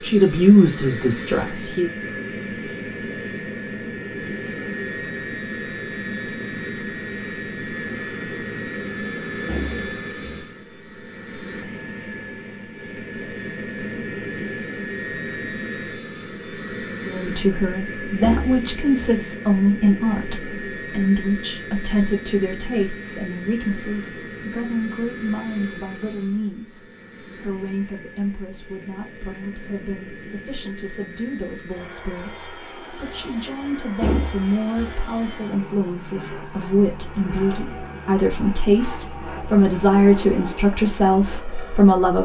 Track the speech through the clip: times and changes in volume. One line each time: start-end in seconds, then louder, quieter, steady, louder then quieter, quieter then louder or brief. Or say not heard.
0.0-1.9 brief
17.1-42.1 quieter then louder.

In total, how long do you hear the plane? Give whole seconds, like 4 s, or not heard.
42 s.